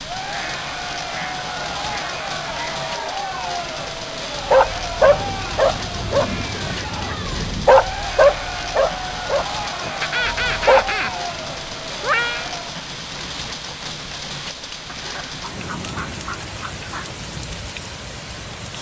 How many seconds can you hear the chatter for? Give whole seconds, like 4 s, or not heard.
13 s.